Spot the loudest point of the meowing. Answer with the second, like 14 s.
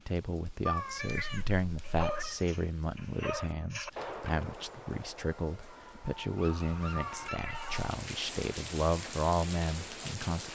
1 s.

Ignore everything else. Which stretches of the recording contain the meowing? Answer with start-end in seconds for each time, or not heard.
0.7-2.4, 6.9-7.8.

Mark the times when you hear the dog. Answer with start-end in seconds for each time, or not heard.
1.8-8.0.